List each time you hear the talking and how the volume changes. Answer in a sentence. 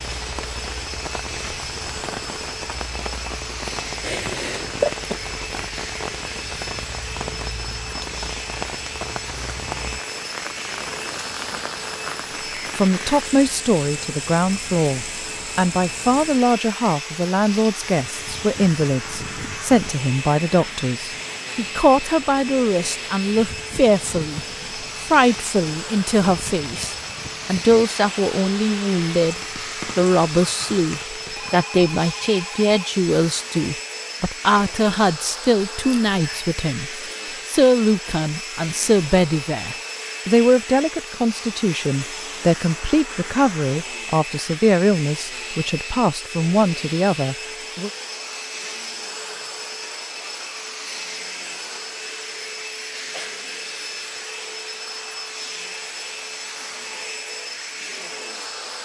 You can hear the talking from 12.8 to 47.9 s, at a steady volume.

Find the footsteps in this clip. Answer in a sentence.
You can't hear the footsteps here.